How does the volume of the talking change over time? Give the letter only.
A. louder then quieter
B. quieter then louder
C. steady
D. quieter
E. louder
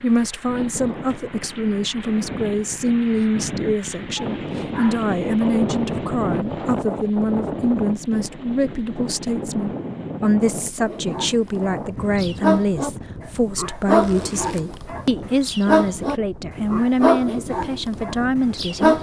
C.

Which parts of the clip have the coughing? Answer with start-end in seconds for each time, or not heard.
not heard.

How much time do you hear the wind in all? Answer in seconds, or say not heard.
19 s.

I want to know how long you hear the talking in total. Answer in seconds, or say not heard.
19 s.